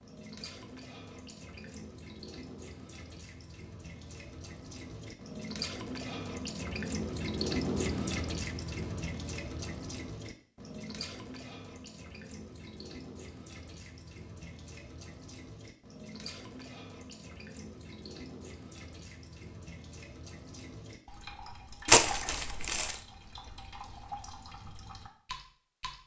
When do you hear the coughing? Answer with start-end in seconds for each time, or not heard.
not heard.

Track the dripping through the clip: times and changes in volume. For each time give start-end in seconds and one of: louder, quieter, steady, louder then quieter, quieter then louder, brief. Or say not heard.
0.0-26.0 louder then quieter.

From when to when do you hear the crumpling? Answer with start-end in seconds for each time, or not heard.
21.9-22.9.